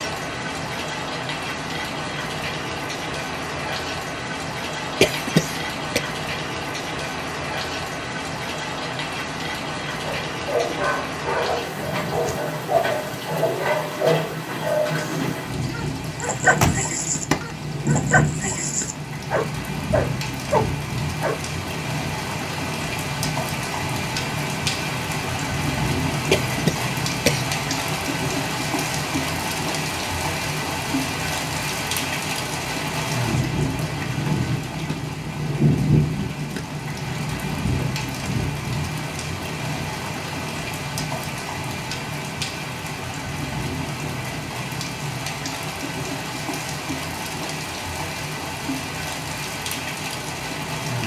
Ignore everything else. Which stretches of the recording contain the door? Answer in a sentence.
The door can be heard from 16.4 to 17.6 s.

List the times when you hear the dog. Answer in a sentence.
You can hear the dog from 10.1 to 21.4 s.